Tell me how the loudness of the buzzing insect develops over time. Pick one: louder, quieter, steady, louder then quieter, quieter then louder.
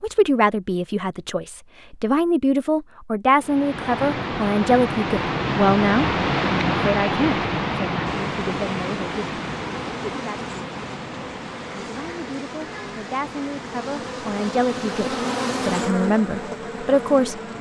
louder.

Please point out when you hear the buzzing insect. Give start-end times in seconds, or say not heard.
8.1-17.5.